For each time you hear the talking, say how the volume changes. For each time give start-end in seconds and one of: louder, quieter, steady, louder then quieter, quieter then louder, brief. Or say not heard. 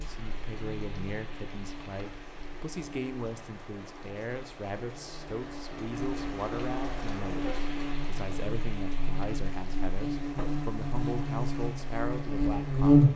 0.0-13.1 steady.